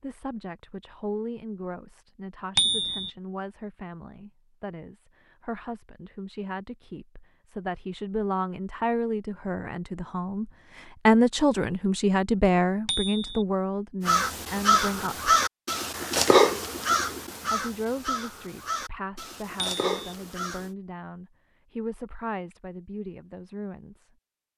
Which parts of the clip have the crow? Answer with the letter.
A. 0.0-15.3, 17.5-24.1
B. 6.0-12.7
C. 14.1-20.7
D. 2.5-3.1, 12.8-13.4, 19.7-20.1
C.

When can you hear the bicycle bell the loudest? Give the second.
3 s.